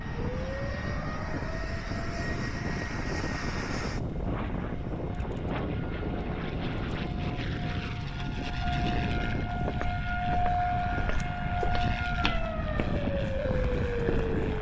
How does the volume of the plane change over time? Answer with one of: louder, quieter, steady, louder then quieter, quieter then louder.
steady.